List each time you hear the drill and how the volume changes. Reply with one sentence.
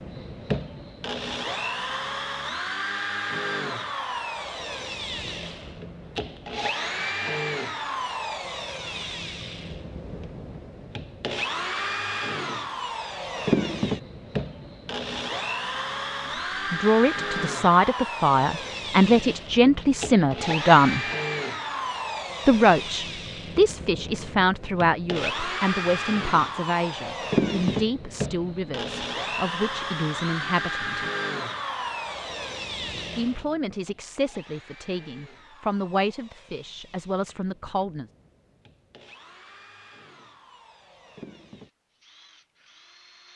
The drill can be heard from 0.0 to 43.3 s, getting quieter.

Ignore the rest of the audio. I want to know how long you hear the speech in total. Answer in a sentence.
You can hear the speech for 18 seconds altogether.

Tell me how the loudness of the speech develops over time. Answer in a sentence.
The loudness of the speech goes down.